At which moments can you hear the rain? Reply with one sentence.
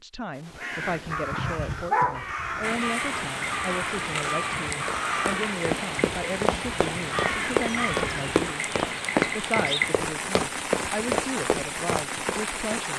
The rain can be heard from 2.6 to 12.9 s.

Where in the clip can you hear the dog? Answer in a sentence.
The dog can be heard from 1.3 to 2.2 s.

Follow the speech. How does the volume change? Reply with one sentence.
The loudness of the speech stays about the same.